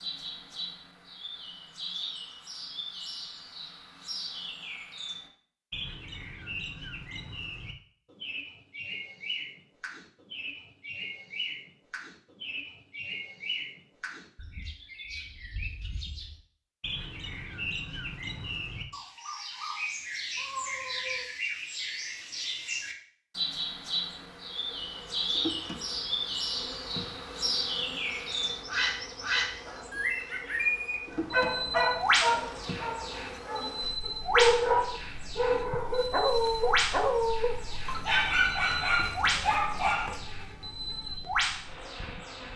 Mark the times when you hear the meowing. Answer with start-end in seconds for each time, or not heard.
20.4-21.2.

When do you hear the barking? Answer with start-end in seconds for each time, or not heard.
31.1-40.2.